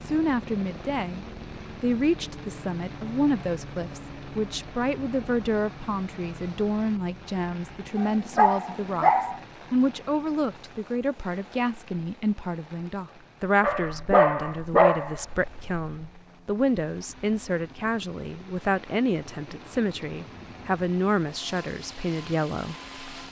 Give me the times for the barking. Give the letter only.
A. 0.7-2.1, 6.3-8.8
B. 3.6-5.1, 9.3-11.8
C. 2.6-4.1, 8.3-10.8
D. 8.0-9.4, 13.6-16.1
D.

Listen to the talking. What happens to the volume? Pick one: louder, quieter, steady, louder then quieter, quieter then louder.
steady.